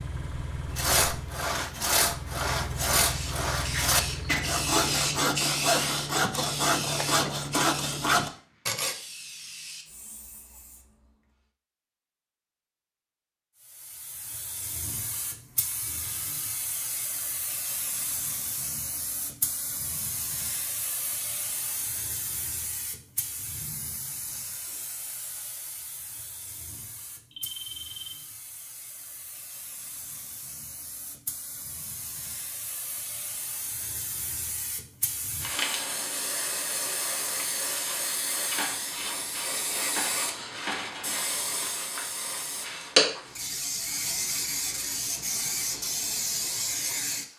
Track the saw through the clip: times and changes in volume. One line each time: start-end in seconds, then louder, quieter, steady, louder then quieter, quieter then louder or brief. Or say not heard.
0.7-8.9 steady.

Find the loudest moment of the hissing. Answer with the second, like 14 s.
43 s.